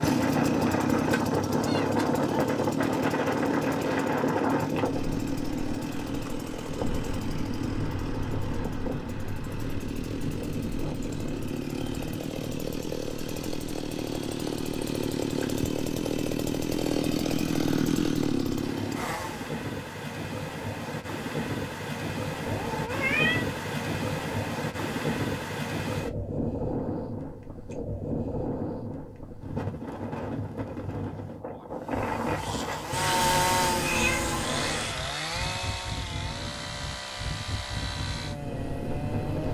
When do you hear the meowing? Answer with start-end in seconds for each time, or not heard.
0.9-2.2, 22.4-23.4, 32.9-35.0.